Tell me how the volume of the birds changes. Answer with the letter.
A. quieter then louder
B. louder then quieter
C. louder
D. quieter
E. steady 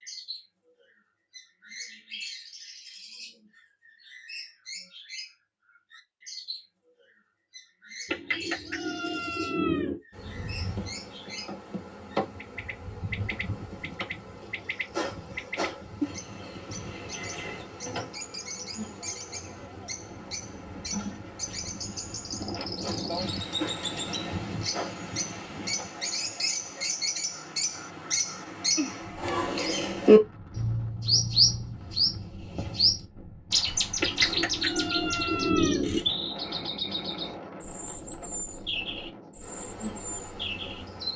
B.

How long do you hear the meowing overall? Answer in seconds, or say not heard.
4 s.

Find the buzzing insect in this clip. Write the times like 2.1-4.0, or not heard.
10.1-25.9, 39.4-41.1.